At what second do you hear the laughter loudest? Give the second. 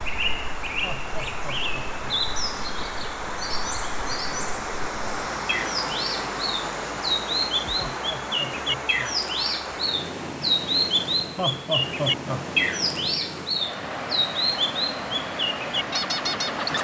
12 s.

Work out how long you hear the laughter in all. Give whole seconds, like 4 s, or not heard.
4 s.